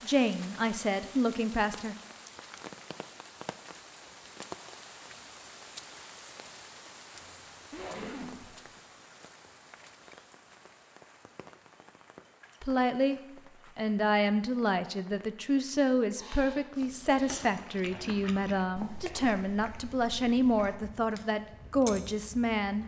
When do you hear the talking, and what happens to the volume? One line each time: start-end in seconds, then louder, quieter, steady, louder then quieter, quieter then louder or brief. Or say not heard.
0.0-1.9 brief
12.6-22.8 steady.